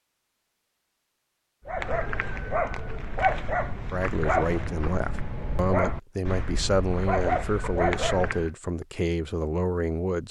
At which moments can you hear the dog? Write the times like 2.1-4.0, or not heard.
1.6-8.5.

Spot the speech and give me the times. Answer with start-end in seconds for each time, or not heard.
3.9-10.2.